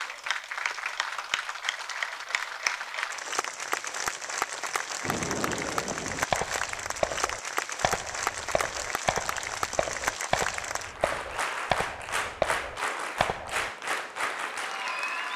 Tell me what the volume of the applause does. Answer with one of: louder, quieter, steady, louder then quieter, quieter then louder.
steady.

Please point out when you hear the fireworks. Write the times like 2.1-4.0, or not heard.
5.0-13.7.